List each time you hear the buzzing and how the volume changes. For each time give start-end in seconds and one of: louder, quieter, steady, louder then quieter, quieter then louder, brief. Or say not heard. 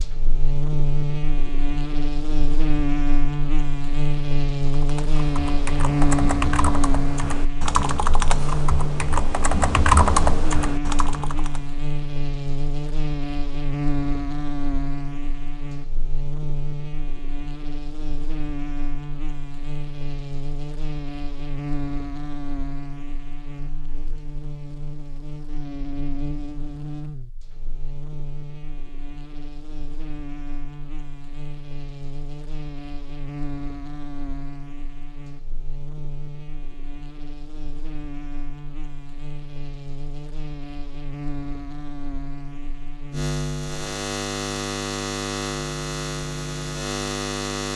0.0-47.7 quieter then louder.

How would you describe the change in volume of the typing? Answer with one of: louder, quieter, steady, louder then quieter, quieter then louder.
louder.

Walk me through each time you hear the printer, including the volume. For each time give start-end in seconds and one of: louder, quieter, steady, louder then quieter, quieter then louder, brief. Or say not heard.
not heard.